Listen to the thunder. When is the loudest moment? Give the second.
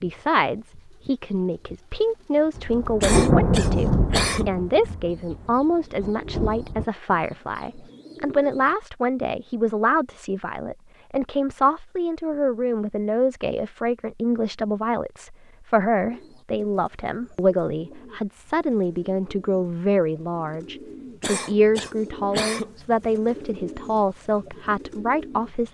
3 s.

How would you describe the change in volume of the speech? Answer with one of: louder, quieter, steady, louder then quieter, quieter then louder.
steady.